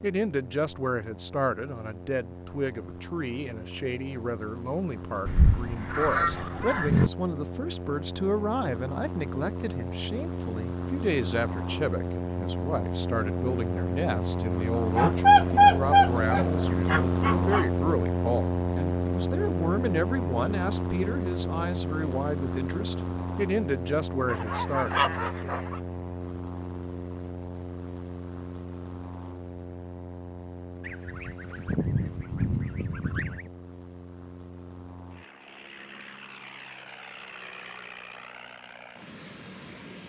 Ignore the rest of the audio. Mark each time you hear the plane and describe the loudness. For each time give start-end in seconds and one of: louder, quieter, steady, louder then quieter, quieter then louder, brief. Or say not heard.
0.0-40.0 louder then quieter.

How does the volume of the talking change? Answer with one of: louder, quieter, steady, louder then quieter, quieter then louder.
steady.